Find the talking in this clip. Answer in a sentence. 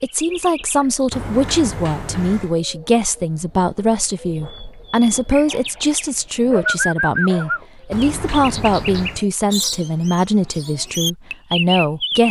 The talking can be heard from 0.0 to 12.2 s.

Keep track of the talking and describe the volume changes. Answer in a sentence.
The volume of the talking stays about the same.